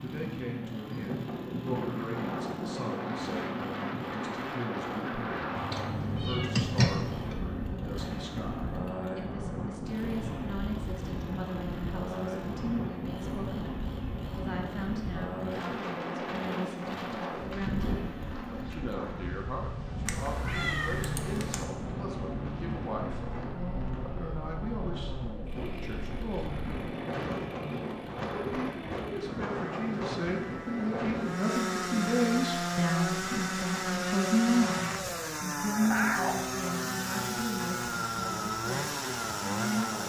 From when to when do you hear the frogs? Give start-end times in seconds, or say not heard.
not heard.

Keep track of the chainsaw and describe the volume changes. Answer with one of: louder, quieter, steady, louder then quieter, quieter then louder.
louder.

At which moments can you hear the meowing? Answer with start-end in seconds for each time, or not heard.
5.5-7.3, 20.1-21.6, 35.8-36.5.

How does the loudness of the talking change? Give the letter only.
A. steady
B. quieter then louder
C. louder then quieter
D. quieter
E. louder
E.